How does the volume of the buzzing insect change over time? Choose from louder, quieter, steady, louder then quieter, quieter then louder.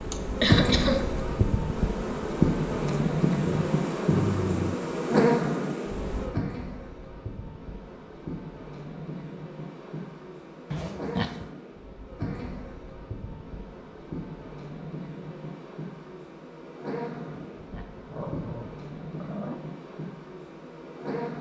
quieter.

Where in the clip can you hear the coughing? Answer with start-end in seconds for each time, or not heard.
0.1-1.1.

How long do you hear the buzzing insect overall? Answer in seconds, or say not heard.
21 s.